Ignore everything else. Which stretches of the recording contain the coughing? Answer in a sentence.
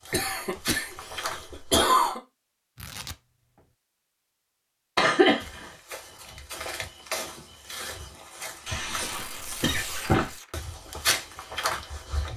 The coughing can be heard from 0.1 to 2.2 s, from 5.0 to 5.7 s and from 8.7 to 10.3 s.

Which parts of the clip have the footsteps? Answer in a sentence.
You can hear the footsteps from 0.0 to 1.9 s and from 5.4 to 12.3 s.